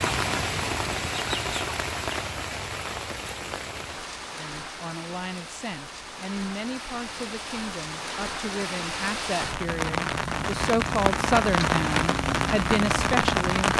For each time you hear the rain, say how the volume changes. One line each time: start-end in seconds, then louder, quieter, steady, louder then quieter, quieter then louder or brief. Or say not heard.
0.0-13.7 quieter then louder.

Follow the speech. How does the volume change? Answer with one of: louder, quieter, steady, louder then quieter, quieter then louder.
louder.